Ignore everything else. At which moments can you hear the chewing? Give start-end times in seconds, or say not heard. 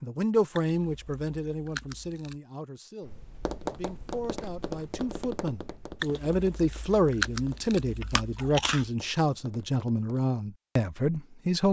0.6-2.4, 6.0-8.9.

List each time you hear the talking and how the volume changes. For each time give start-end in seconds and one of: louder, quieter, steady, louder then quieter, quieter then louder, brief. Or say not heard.
0.0-11.6 quieter then louder.